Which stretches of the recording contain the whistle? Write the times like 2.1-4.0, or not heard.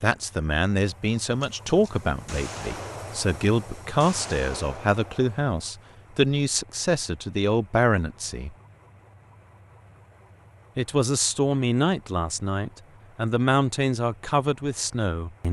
not heard.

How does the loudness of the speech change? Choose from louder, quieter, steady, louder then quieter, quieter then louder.
steady.